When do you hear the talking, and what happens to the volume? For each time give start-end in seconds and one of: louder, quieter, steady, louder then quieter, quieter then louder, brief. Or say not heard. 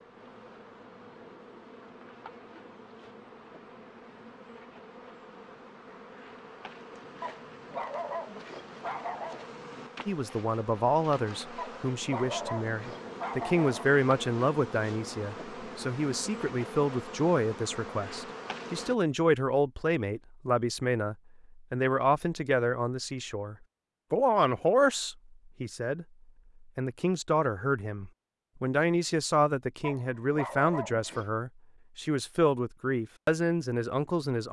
10.1-26.1 steady
26.8-34.4 steady.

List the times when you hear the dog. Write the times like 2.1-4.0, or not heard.
7.2-9.4, 11.6-13.9, 29.8-31.2.